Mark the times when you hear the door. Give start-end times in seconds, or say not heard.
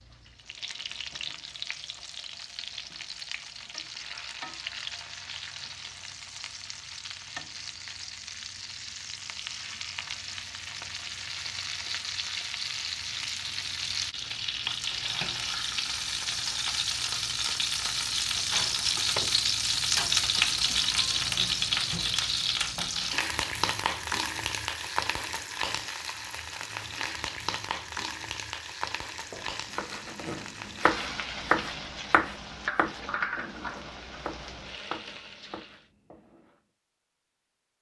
18.6-19.4.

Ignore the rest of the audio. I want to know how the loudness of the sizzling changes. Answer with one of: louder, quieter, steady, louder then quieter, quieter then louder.
louder then quieter.